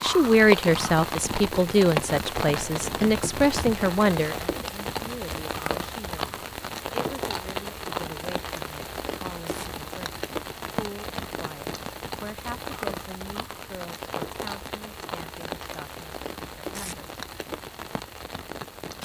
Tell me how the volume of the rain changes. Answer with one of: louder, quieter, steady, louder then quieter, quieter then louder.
quieter.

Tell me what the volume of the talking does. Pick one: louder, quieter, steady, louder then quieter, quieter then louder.
quieter.